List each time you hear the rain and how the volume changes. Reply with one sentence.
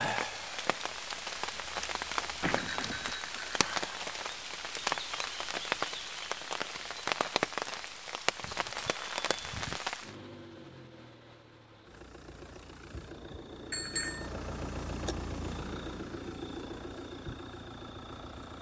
The rain can be heard from 0.0 to 10.2 s, at a steady volume.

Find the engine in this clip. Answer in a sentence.
The engine can be heard from 10.0 to 18.5 s.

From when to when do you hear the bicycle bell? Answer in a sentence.
You can hear the bicycle bell from 2.4 to 3.8 s, from 8.4 to 9.8 s and from 13.7 to 14.3 s.